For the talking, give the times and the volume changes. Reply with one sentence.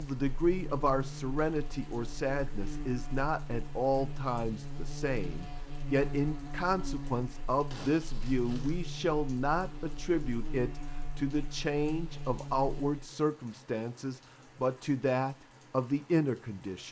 The talking can be heard from 0.0 to 16.8 s, at a steady volume.